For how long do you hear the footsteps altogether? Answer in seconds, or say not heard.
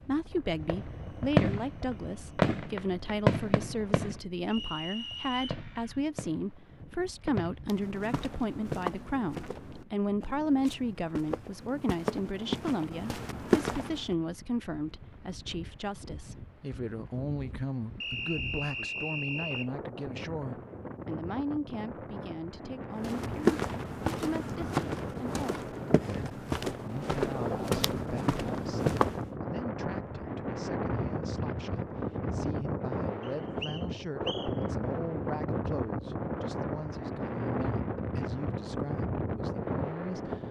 13 s.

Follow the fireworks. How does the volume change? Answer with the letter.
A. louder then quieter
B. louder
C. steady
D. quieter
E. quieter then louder
D.